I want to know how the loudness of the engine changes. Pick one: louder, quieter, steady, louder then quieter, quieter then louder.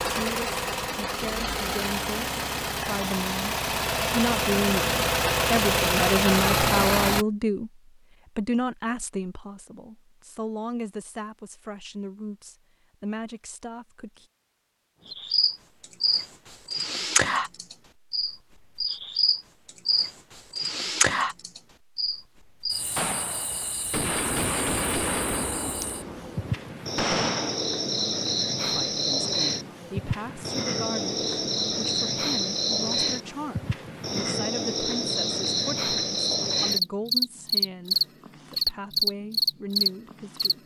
louder.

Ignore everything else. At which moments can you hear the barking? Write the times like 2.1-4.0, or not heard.
not heard.